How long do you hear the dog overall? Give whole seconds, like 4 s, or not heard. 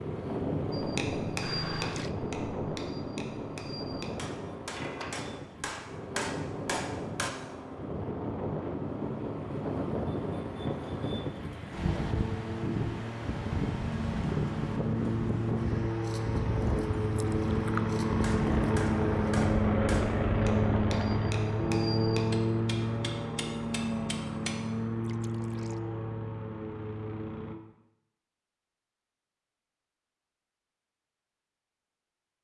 not heard.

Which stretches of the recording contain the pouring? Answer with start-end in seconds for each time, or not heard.
1.4-2.1, 17.1-17.9, 25.0-25.8.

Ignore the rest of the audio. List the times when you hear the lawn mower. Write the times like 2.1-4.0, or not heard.
0.0-27.6.